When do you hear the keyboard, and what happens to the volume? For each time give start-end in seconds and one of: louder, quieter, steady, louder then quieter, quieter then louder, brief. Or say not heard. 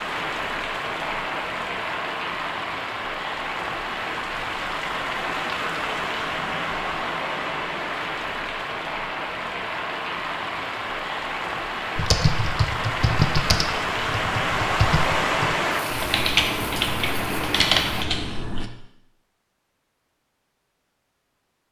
11.9-18.7 quieter then louder.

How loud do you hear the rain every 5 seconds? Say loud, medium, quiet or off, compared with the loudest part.
loud, loud, loud, loud, off.